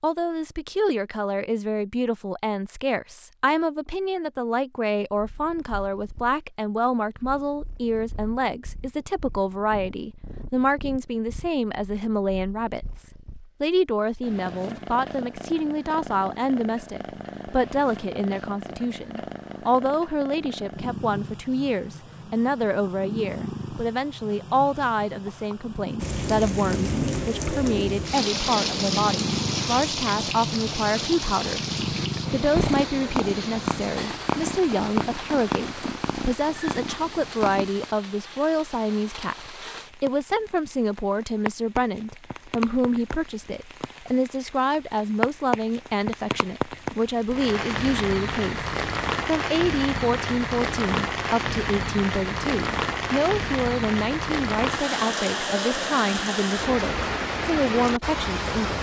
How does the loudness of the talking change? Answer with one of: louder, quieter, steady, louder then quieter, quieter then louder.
steady.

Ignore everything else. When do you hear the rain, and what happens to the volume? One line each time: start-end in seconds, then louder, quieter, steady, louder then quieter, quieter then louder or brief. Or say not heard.
25.9-58.7 quieter then louder.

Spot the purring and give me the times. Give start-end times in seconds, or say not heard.
5.1-38.0.